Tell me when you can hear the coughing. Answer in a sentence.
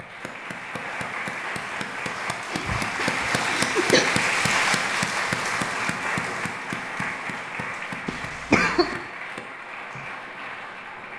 You can hear the coughing from 2.5 to 4.0 s and from 8.1 to 8.9 s.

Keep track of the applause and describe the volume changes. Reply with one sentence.
The loudness of the applause goes up, then down.